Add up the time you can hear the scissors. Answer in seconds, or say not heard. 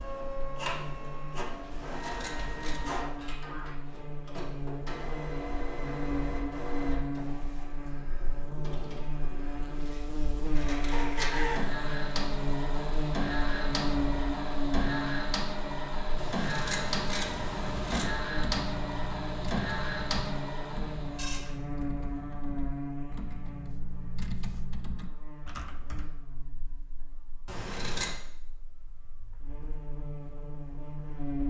4 s.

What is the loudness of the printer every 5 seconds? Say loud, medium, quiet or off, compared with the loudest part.
medium, medium, loud, loud, loud, off, off.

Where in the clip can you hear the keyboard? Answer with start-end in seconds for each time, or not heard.
17.7-26.2.